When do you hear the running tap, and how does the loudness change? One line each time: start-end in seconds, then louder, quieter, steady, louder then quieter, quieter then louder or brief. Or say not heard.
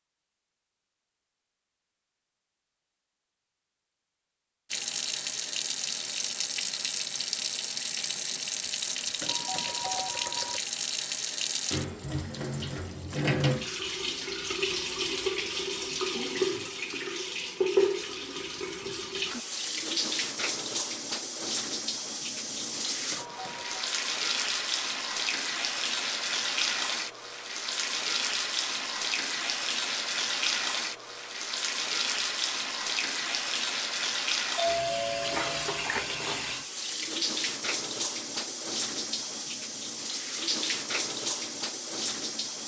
4.7-42.6 steady.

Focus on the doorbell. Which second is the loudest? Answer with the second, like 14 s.
35 s.